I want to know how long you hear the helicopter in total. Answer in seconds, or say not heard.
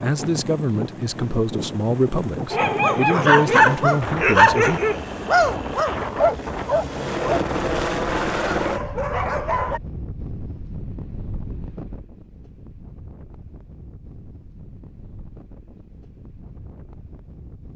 9 s.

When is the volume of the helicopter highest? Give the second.
8 s.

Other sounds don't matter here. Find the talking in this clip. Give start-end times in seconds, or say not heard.
0.0-4.8.